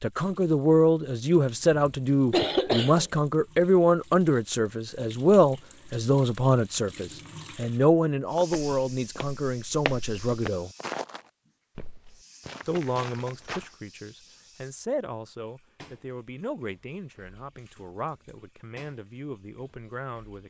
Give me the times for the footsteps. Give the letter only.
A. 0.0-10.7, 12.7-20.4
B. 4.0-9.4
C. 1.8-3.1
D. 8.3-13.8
D.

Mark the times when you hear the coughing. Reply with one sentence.
You can hear the coughing from 1.8 to 3.1 s.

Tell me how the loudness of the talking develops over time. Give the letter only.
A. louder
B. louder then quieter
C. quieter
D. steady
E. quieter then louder
C.